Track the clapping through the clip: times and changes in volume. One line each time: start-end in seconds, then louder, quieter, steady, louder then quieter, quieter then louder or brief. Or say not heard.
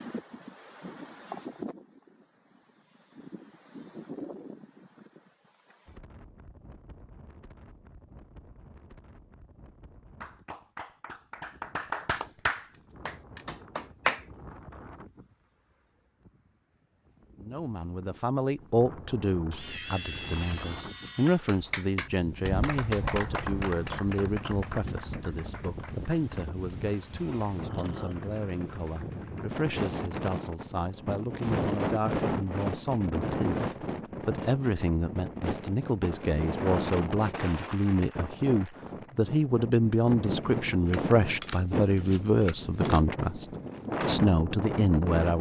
10.2-14.2 louder then quieter
21.4-29.4 quieter.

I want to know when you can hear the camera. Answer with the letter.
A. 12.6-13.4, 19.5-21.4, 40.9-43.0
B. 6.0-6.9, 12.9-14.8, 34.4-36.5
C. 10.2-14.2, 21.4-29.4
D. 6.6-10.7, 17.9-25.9
A.